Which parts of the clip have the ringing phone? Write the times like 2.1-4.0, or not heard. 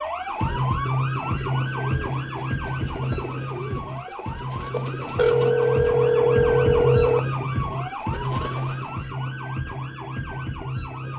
4.7-7.2.